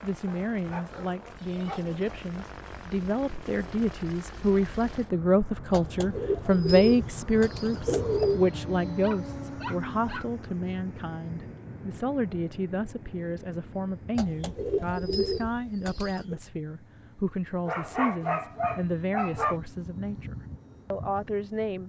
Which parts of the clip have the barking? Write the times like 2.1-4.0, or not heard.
0.2-1.9, 9.0-10.3, 17.6-19.6.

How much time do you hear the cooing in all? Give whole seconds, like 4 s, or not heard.
5 s.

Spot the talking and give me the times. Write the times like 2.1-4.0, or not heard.
0.0-21.8.